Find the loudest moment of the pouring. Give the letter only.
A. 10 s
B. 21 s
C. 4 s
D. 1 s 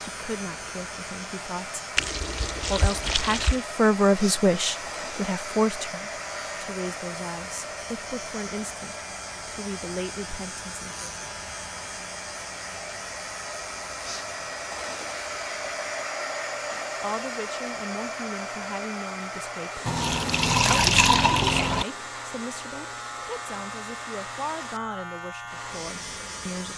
B.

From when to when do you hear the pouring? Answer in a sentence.
You can hear the pouring from 1.9 to 3.6 s and from 19.9 to 21.9 s.